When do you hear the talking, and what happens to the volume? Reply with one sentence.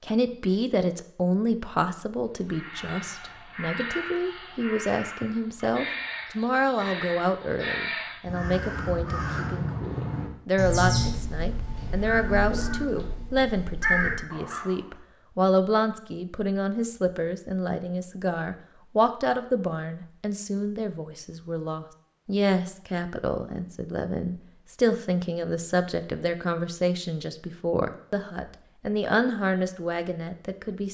You can hear the talking from 0.0 to 30.8 s, at a steady volume.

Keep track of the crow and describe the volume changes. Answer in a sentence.
The loudness of the crow goes up.